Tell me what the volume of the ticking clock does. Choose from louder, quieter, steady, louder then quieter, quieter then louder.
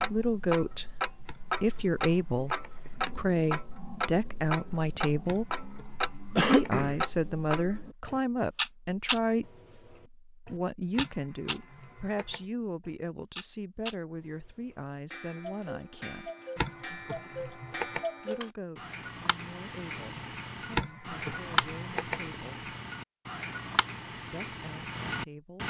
quieter then louder.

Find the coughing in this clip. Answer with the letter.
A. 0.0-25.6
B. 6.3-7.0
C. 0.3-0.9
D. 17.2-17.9
B.